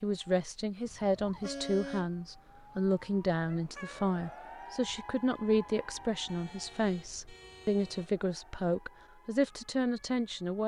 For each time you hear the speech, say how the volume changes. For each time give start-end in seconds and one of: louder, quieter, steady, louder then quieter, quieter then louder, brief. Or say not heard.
0.0-10.6 steady.